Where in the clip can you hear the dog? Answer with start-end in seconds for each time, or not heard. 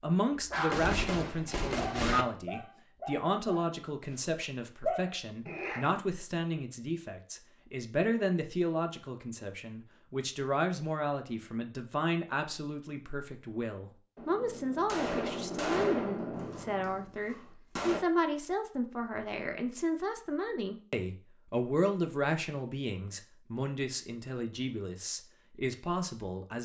0.3-0.9, 1.8-5.9.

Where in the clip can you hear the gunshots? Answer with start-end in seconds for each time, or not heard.
0.7-2.2, 14.2-18.0.